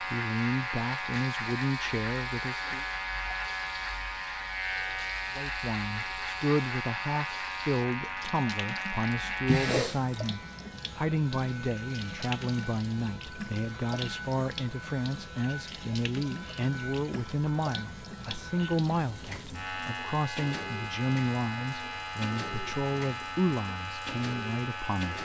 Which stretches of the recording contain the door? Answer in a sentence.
You can hear the door from 9.4 to 10.2 s.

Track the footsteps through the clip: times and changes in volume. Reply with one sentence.
You can't hear the footsteps here.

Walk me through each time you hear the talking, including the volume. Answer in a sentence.
You can hear the talking briefly from 0.0 to 2.9 s; and from 5.3 to 25.1 s, at a steady volume.